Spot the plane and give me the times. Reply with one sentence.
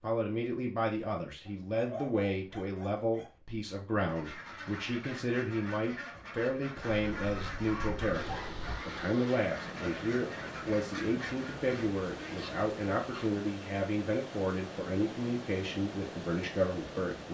You can't hear the plane here.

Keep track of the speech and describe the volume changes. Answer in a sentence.
The volume of the speech stays about the same.